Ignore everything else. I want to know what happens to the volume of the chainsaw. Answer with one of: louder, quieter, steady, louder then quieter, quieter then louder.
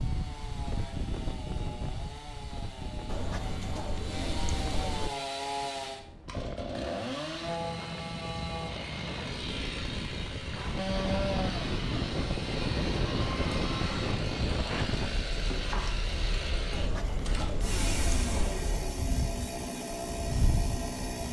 louder.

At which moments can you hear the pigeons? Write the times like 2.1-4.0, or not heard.
3.0-5.1, 16.7-18.6.